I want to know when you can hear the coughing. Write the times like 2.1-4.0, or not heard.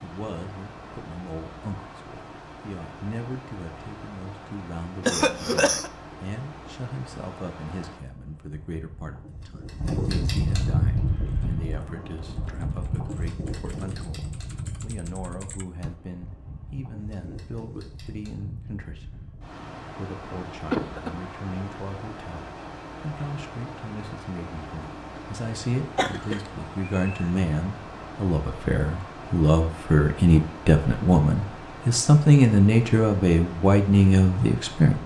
5.0-5.9, 20.7-21.1, 25.9-27.2.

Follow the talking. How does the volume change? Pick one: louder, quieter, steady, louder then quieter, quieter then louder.
louder.